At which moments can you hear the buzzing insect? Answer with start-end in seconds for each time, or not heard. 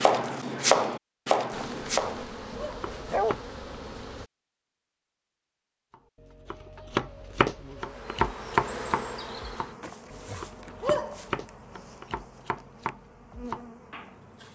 1.5-4.3, 6.9-14.5.